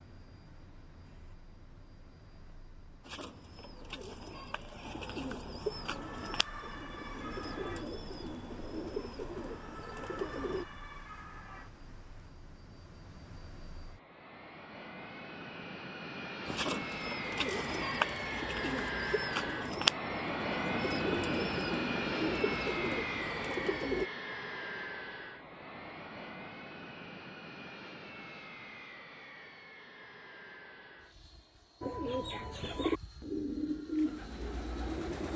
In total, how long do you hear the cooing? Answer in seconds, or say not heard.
19 s.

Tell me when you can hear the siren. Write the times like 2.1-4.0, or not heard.
5.8-12.3.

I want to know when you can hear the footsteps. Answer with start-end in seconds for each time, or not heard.
not heard.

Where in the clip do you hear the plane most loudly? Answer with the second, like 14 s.
21 s.